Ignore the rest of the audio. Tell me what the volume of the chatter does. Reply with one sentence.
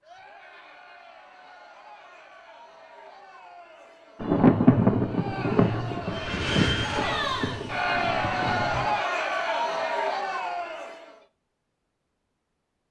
The loudness of the chatter goes up.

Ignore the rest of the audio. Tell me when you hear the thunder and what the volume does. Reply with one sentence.
The thunder can be heard from 4.2 to 9.0 s, getting quieter.